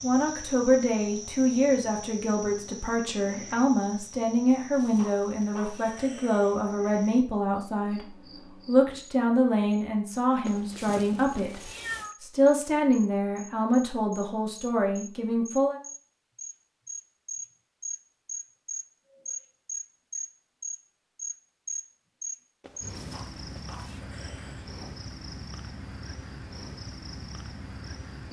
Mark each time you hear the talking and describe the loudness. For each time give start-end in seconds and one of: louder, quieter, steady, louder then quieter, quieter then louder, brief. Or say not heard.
0.0-15.8 steady.